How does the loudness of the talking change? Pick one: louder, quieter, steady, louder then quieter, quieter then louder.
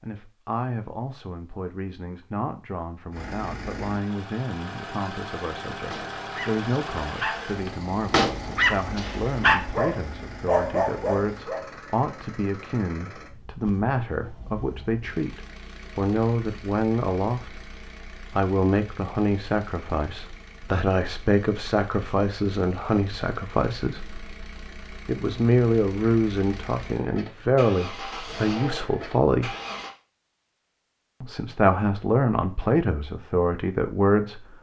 louder.